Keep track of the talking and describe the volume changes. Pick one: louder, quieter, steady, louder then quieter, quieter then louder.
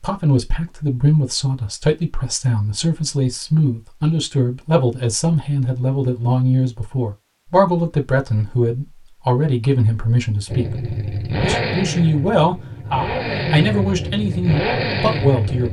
steady.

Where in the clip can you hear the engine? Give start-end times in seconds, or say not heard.
10.4-15.6.